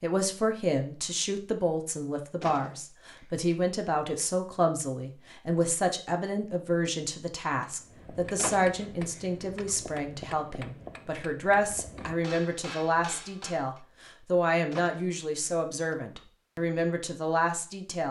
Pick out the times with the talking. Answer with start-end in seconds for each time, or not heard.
0.0-18.0.